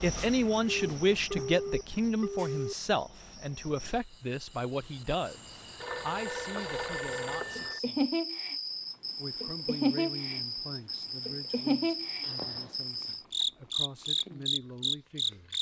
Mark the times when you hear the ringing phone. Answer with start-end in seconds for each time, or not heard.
0.7-2.8, 5.8-7.8, 12.2-12.8.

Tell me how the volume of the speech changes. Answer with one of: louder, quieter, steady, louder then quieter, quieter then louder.
quieter.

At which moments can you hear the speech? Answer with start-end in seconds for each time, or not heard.
0.0-8.1, 9.2-15.5.